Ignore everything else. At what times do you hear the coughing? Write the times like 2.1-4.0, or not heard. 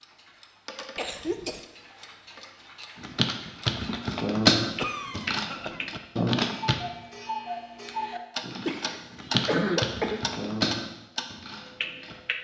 0.9-1.6, 4.8-5.8, 8.7-10.2.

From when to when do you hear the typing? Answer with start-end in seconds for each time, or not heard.
3.0-6.8, 8.4-12.2.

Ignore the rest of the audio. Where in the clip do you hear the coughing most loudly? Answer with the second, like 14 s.
10 s.